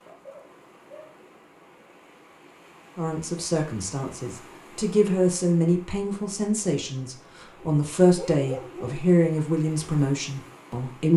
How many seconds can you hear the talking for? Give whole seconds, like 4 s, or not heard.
8 s.